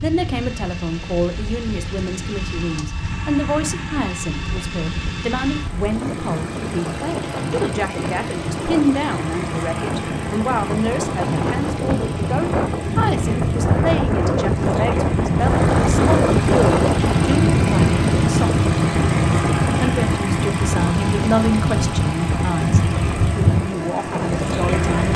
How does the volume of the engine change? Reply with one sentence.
The loudness of the engine goes up.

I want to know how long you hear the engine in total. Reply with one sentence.
The engine can be heard for 25 seconds in total.